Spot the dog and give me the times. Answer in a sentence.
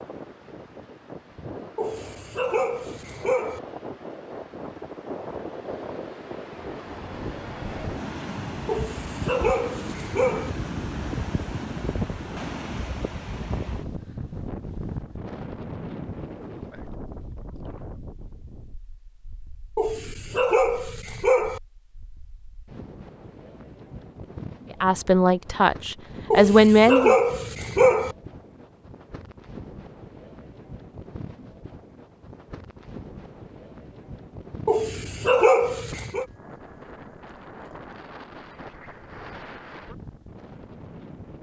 You can hear the dog from 1.8 to 3.6 s, from 8.7 to 10.5 s, from 19.8 to 21.6 s, from 26.3 to 28.1 s and from 34.6 to 36.2 s.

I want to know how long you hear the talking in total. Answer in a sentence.
You can hear the talking for 2 seconds altogether.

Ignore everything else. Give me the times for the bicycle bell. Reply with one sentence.
You can't hear the bicycle bell here.